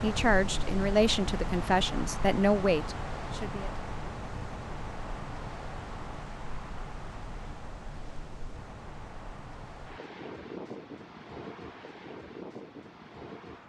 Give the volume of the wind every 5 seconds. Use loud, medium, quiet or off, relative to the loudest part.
loud, medium, medium.